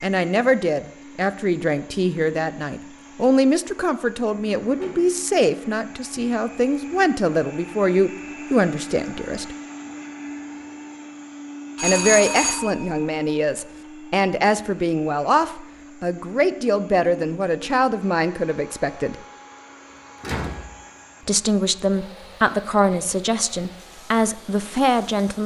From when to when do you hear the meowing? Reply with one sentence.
The meowing can't be heard in this clip.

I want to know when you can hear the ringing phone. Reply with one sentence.
You can hear the ringing phone from 11.8 to 13.2 s.